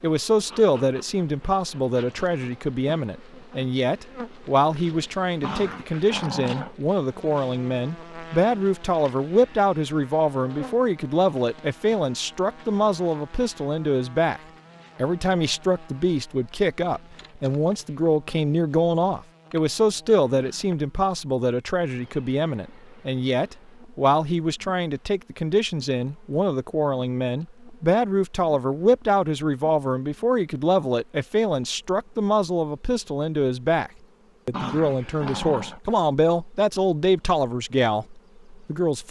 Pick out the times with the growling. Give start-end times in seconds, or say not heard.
5.4-6.8, 34.5-35.8.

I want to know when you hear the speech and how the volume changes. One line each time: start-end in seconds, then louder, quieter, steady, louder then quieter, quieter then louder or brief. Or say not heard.
0.0-39.0 steady.